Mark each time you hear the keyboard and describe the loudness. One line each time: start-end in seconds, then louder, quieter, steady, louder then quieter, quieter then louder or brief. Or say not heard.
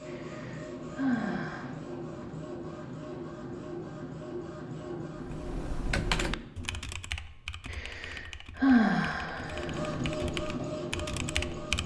5.2-11.8 quieter then louder.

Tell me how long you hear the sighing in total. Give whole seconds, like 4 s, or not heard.
4 s.